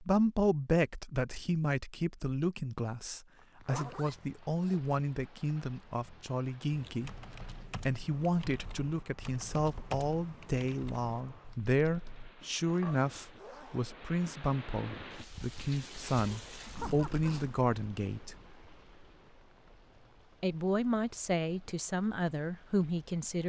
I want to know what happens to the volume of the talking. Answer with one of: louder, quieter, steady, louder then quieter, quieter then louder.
steady.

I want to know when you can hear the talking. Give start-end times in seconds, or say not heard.
0.0-7.2, 7.8-18.4, 20.4-23.4.